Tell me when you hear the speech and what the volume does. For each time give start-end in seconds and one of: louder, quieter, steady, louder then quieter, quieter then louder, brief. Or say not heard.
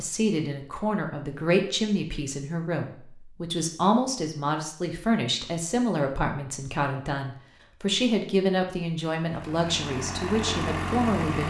0.0-11.4 steady.